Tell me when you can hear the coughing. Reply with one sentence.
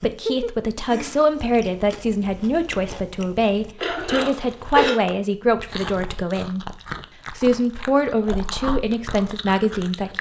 The coughing can be heard from 3.8 to 5.0 s.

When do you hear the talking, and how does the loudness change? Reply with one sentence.
You can hear the talking from 0.0 to 6.7 s, at a steady volume; and briefly from 7.3 to 10.1 s.